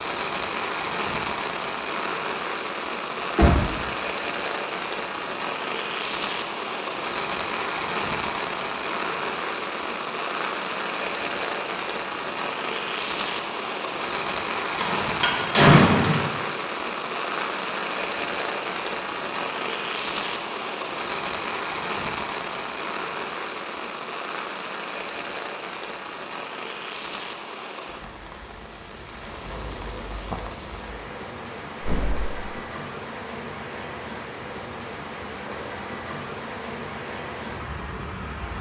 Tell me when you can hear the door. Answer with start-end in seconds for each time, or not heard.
2.8-3.5, 14.8-16.2, 31.8-32.3.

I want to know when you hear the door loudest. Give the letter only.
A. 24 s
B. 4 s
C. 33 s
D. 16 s
D.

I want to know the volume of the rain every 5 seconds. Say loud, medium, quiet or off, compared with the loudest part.
loud, loud, loud, loud, loud, medium, medium, medium.